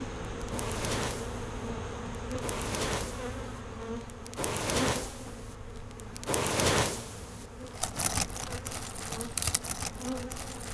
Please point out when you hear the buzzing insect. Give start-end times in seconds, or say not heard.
0.0-10.6.